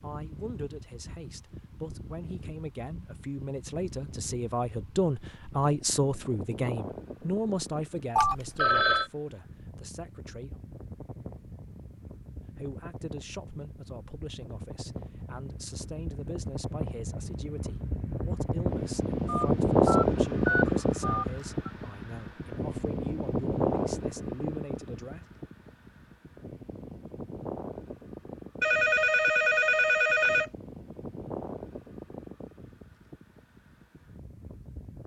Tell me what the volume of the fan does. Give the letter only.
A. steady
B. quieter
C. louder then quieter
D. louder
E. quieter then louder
C.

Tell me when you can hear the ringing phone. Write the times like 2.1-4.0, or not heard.
8.2-9.1, 19.2-21.7, 28.6-30.5.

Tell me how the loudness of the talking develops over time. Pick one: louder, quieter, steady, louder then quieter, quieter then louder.
louder then quieter.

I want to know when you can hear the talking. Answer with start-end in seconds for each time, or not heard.
0.0-10.6, 12.6-25.2.